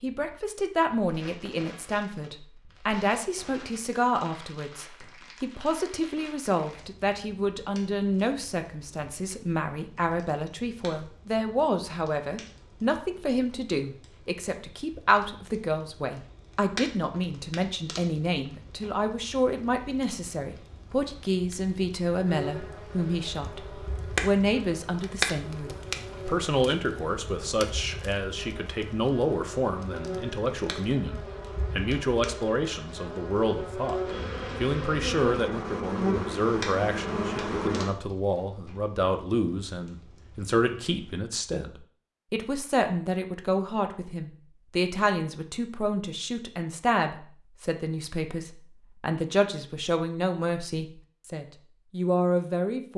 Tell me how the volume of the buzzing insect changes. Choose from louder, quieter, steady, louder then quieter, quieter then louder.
louder.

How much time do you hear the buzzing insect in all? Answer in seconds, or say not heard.
16 s.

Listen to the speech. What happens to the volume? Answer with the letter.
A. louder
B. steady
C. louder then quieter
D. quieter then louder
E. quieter
B.